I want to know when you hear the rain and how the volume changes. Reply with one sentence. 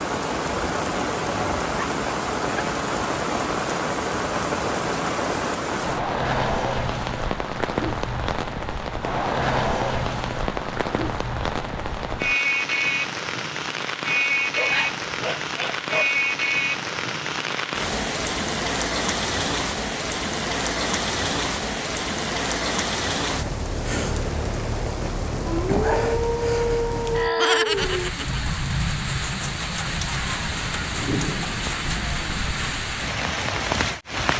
You can hear the rain from 0.0 to 34.3 s, at a steady volume.